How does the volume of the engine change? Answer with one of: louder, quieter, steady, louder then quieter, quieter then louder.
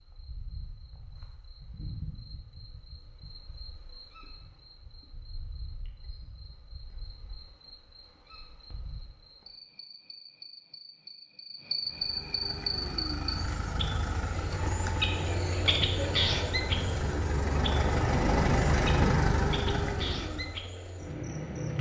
louder.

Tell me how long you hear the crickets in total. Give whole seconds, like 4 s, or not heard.
22 s.